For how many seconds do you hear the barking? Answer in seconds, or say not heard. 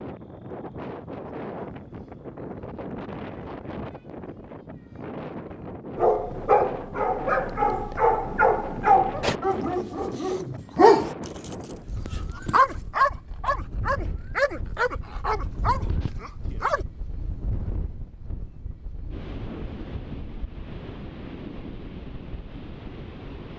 10 s.